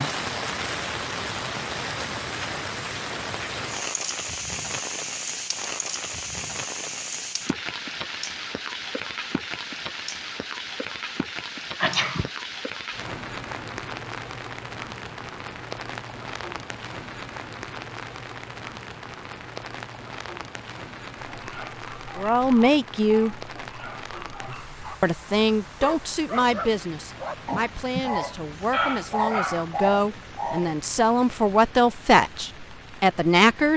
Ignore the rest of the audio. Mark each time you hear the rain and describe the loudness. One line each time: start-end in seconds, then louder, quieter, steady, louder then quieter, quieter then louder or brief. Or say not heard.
0.0-33.7 quieter.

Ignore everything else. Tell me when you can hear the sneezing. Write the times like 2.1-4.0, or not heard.
11.8-12.3.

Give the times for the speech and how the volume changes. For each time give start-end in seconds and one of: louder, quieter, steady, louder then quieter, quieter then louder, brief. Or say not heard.
22.1-23.4 brief
25.0-33.7 quieter then louder.